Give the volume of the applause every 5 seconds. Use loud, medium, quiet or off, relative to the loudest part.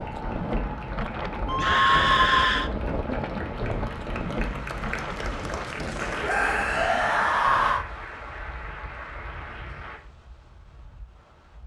loud, loud, off.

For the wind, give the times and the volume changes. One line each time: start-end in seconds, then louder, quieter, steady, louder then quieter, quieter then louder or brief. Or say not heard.
0.0-11.6 quieter.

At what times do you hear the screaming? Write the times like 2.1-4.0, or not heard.
1.4-2.7, 6.2-7.8.